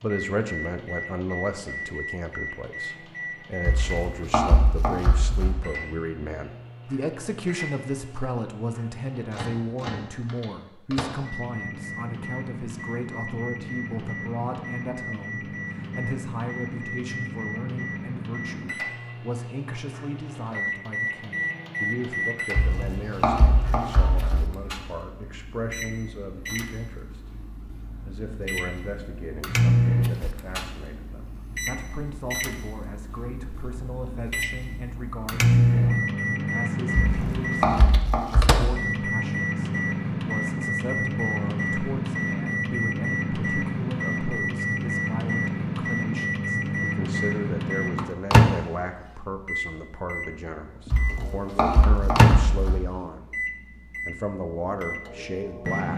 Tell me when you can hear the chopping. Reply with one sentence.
The chopping can be heard from 3.6 to 5.5 s, from 22.6 to 24.4 s, from 37.0 to 38.6 s and from 50.9 to 52.8 s.